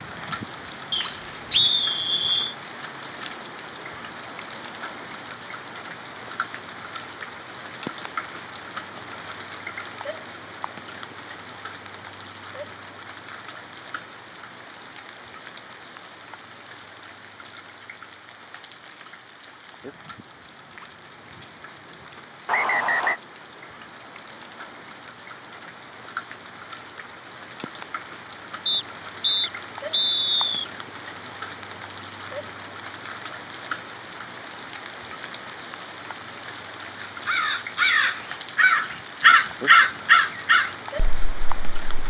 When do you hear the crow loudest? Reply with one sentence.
The volume of the crow peaks at 40 seconds.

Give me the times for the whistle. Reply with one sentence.
The whistle can be heard from 0.9 to 2.5 s, from 22.4 to 23.2 s and from 28.6 to 30.6 s.